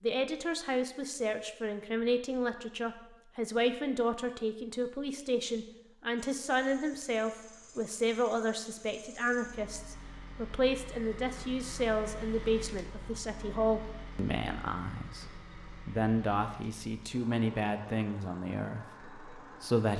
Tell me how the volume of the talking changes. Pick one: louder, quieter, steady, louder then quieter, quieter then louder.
steady.